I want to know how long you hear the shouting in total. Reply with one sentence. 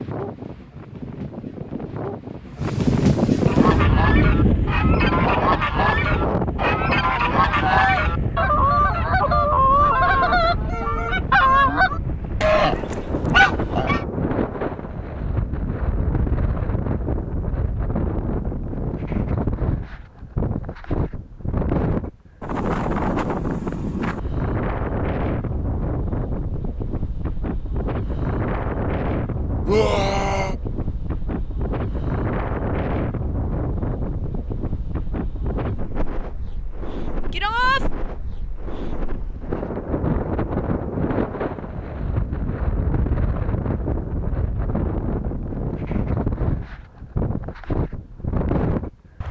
You can hear the shouting for 3 seconds altogether.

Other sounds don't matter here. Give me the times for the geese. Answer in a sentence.
You can hear the geese from 3.4 to 14.1 s.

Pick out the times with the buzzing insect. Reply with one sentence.
You can't hear the buzzing insect here.